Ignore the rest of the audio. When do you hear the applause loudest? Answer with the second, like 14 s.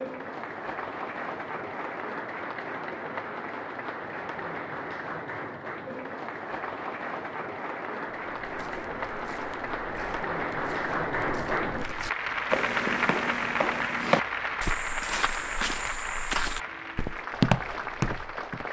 13 s.